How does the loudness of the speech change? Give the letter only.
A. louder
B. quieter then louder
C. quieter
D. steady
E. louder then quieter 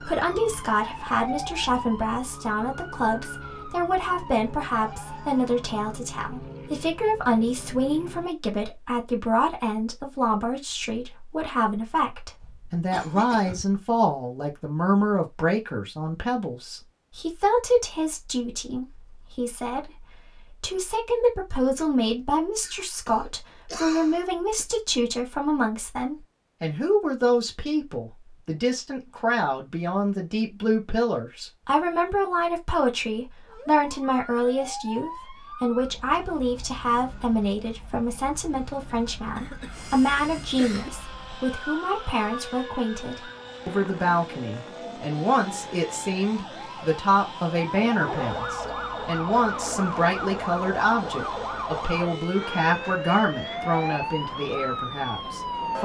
D.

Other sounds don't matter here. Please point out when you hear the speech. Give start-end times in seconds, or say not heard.
0.0-55.8.